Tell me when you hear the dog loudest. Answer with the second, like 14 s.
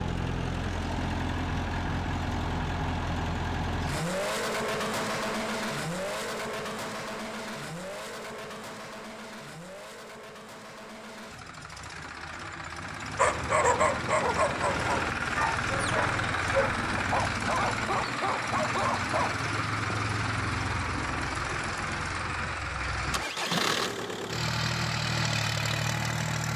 14 s.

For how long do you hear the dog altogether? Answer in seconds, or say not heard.
6 s.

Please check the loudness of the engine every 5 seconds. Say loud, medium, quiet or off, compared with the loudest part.
loud, medium, medium, loud, loud, loud.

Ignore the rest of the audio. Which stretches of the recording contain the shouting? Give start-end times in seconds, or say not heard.
not heard.